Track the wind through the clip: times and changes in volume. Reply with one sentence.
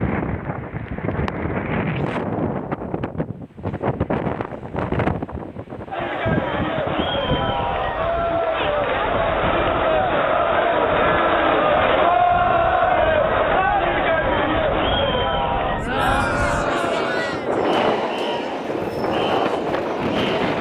The wind can be heard from 0.0 to 20.5 s, getting quieter then louder.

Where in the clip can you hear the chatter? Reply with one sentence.
You can hear the chatter from 5.9 to 20.5 s.